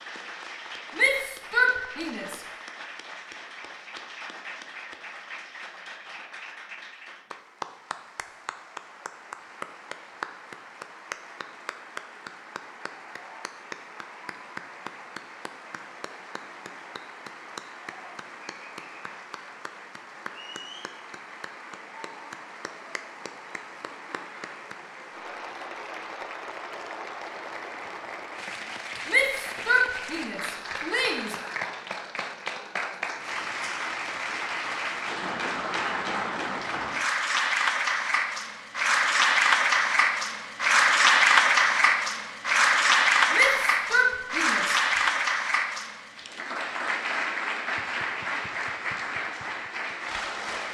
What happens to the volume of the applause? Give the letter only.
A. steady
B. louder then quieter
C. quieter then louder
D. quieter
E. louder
E.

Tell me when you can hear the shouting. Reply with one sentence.
The shouting can be heard from 0.9 to 2.4 s, from 29.1 to 31.4 s and from 43.3 to 44.8 s.